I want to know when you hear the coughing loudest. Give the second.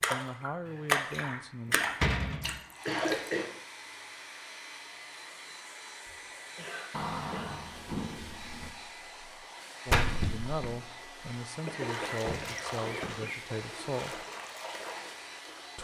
3 s.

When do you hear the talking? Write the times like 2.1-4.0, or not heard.
0.1-1.8, 9.8-14.2.